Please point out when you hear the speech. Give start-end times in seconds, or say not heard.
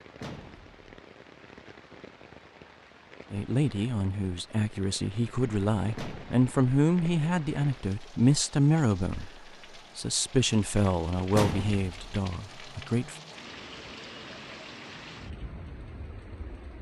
3.3-13.2.